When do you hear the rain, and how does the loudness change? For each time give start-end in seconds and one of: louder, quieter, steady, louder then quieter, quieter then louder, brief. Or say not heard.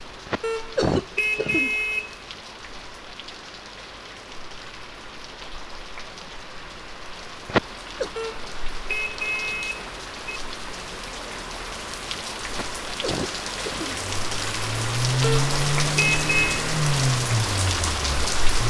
0.0-18.6 louder.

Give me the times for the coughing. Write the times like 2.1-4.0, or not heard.
0.2-1.7, 7.5-8.1, 12.5-14.0.